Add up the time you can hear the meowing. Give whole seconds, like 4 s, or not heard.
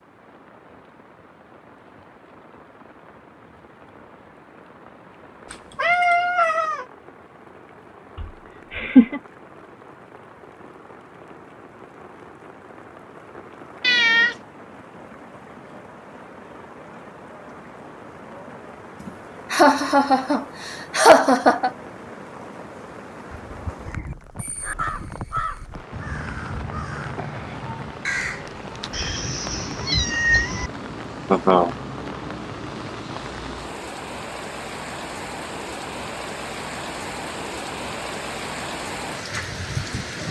4 s.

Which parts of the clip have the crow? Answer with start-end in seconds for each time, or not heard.
23.4-29.1.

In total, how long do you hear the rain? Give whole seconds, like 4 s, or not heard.
40 s.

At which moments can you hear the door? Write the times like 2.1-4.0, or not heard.
not heard.